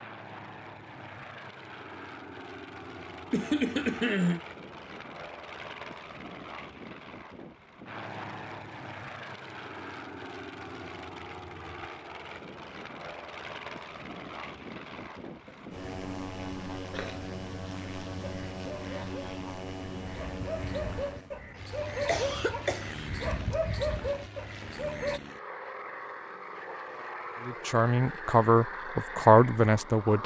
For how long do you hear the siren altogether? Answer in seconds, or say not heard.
not heard.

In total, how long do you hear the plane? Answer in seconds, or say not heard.
30 s.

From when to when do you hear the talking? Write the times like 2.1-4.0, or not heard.
27.4-30.2.